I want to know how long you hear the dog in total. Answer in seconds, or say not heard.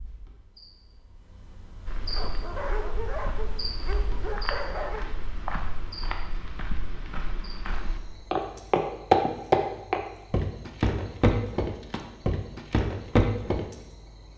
3 s.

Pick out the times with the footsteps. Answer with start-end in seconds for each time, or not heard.
1.9-13.7.